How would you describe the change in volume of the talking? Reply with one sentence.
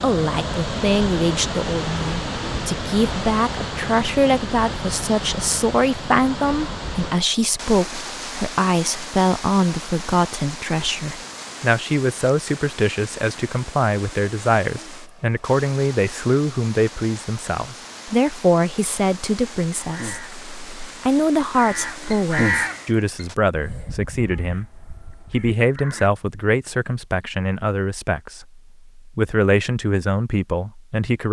The volume of the talking stays about the same.